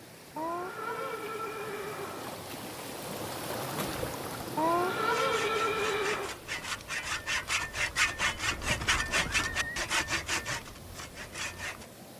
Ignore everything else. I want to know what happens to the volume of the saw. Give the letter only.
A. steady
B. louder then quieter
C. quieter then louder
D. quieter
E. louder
B.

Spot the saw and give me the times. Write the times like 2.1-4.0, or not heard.
5.0-11.8.